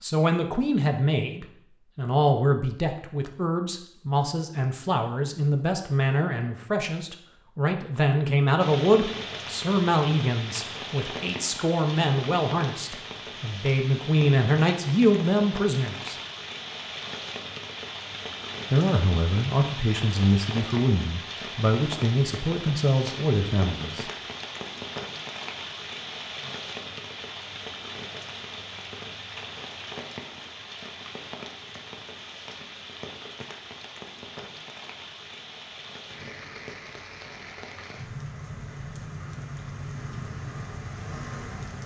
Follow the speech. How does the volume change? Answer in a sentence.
The volume of the speech stays about the same.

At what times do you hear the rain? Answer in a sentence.
You can hear the rain from 8.6 to 41.8 s.